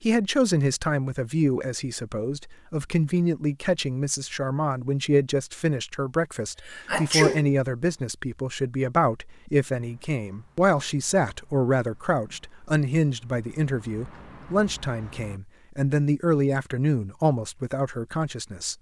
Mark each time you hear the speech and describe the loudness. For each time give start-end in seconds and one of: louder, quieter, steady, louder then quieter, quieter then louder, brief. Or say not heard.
0.0-18.7 steady.